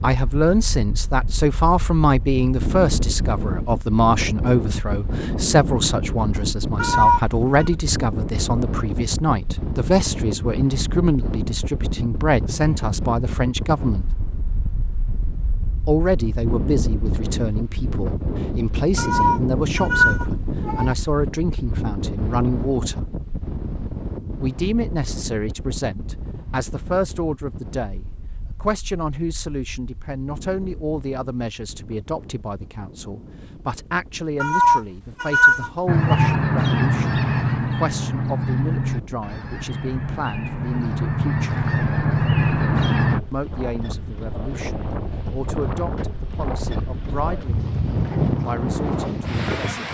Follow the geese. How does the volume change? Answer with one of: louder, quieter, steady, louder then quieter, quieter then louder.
quieter then louder.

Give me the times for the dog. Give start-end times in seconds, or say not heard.
not heard.